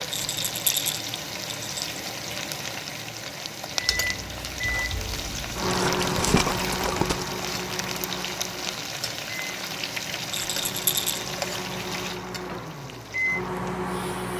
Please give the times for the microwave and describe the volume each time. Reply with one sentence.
The microwave can be heard from 3.8 to 14.3 s, getting quieter then louder.